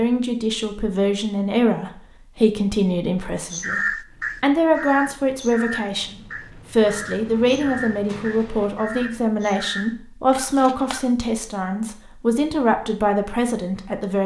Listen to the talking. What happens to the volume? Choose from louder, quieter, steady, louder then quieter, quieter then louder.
steady.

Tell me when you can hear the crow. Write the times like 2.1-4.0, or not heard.
3.5-11.1.